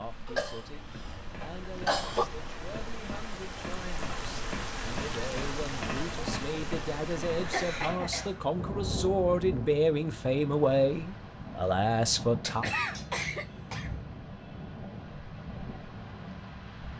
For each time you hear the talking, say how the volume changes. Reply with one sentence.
You can hear the talking from 0.0 to 12.7 s, getting louder.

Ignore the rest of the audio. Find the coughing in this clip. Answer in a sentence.
The coughing can be heard from 0.2 to 2.2 s, from 7.3 to 8.4 s and from 12.4 to 13.9 s.